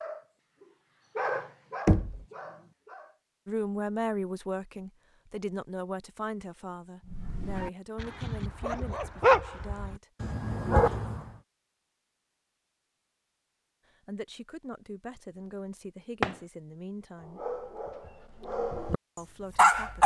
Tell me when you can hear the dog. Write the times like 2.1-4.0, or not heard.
0.0-3.1, 7.1-11.3, 17.2-18.9, 19.6-20.0.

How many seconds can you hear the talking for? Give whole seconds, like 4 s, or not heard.
11 s.